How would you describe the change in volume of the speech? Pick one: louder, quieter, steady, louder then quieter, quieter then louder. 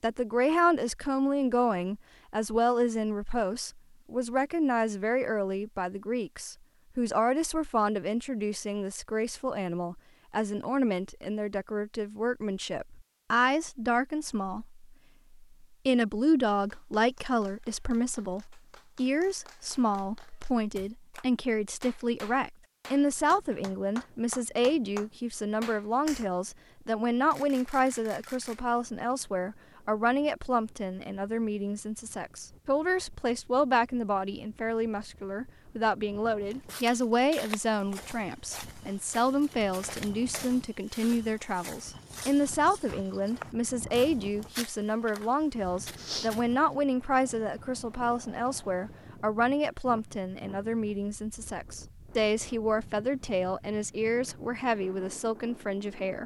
steady.